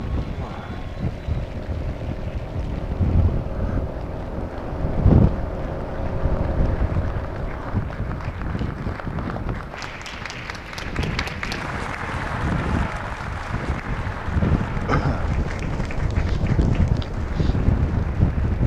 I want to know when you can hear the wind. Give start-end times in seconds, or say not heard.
0.0-18.6.